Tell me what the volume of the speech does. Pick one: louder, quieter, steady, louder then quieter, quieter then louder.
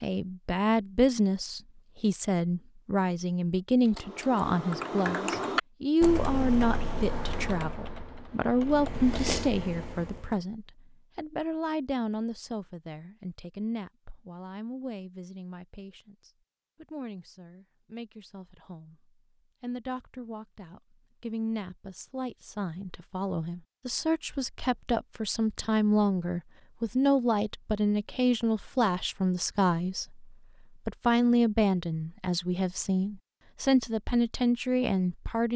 quieter then louder.